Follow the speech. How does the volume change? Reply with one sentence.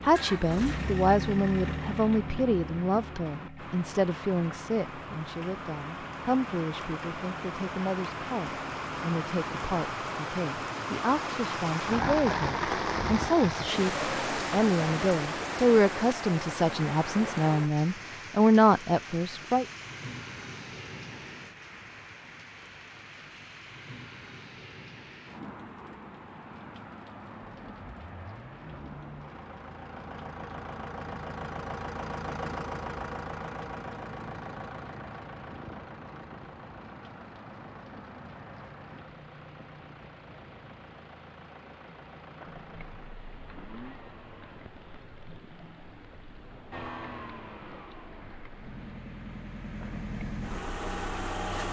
The volume of the speech goes down, then up.